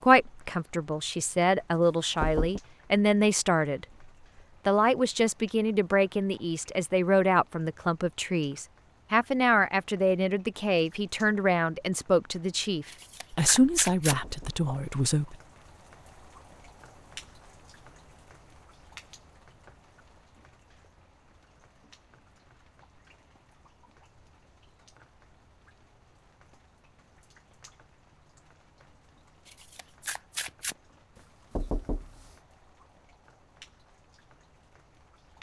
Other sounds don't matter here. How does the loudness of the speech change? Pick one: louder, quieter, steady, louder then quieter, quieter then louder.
steady.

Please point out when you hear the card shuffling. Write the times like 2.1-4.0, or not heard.
12.8-14.2, 29.4-30.8.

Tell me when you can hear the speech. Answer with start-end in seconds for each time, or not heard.
0.0-4.0, 4.7-15.3.